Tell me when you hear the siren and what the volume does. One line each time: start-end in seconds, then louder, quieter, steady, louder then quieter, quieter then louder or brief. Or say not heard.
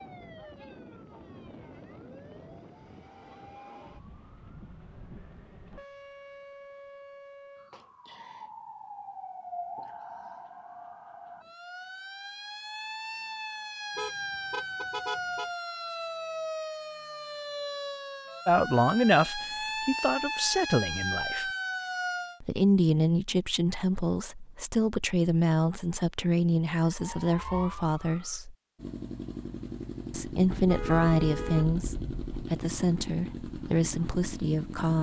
0.0-22.4 louder
26.8-28.4 brief.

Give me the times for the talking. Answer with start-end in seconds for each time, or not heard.
18.4-21.5, 22.4-28.6, 30.1-34.9.